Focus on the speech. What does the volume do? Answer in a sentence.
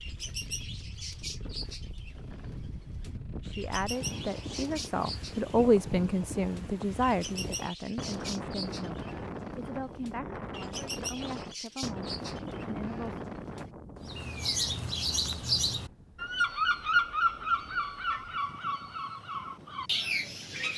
The loudness of the speech goes up, then down.